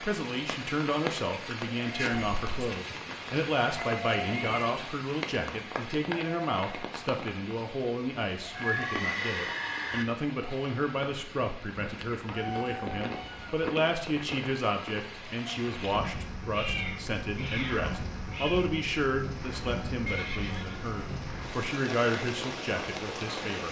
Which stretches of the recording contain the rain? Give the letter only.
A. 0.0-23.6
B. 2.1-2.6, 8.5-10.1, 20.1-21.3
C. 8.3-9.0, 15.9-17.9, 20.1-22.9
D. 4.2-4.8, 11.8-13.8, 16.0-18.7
A.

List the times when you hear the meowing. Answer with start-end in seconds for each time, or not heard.
4.2-4.8, 11.8-13.8, 16.0-18.7.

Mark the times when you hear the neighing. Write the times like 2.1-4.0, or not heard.
2.1-2.6, 8.5-10.1, 20.1-21.3.